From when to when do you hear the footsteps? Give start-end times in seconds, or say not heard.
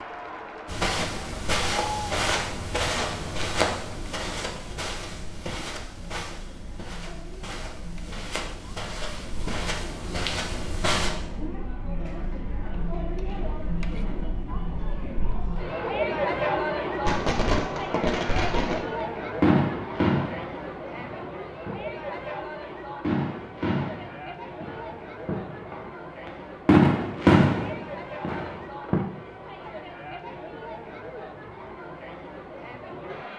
0.7-11.1.